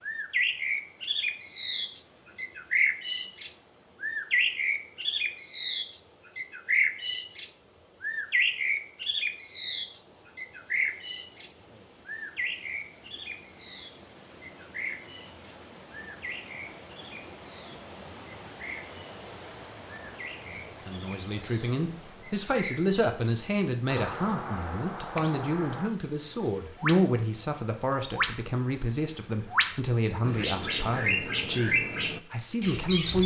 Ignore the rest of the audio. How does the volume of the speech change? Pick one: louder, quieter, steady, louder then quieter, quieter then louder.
steady.